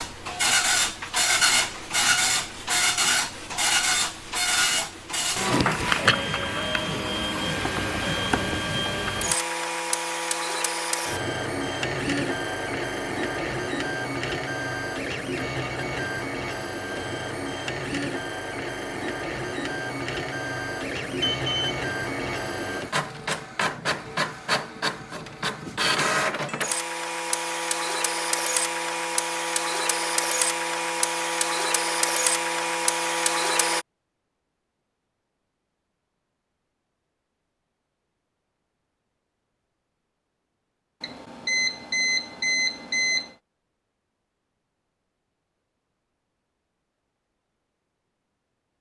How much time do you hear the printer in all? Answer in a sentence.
The printer can be heard for 34 seconds in total.